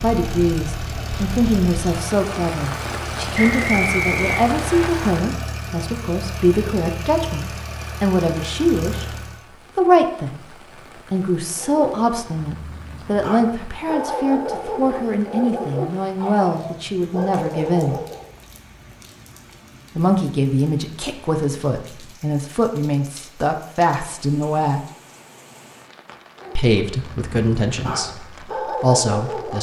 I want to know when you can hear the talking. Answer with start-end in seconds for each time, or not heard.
0.0-9.2, 9.8-18.0, 19.9-24.8, 26.6-29.5.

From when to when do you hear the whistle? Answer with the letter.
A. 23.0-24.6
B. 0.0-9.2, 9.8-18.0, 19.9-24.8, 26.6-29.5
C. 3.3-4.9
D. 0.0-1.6
C.